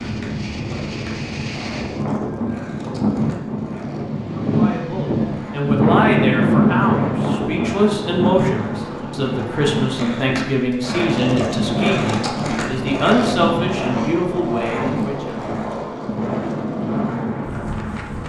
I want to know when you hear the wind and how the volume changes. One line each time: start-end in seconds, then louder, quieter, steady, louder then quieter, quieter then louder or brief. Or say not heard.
0.0-18.2 louder then quieter.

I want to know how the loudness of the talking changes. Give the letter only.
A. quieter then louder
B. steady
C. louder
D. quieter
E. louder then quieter
B.